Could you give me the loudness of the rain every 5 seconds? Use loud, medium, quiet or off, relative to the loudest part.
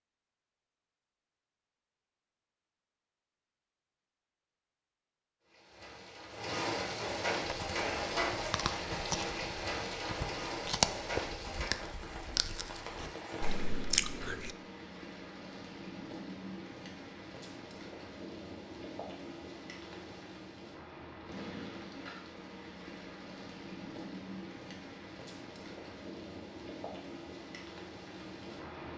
off, loud, medium, medium, medium, medium.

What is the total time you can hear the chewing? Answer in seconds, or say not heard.
7 s.